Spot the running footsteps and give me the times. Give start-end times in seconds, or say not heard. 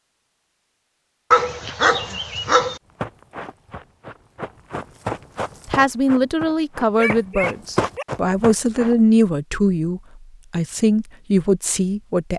3.0-9.1.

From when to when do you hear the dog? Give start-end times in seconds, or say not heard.
1.3-2.8, 7.0-8.1.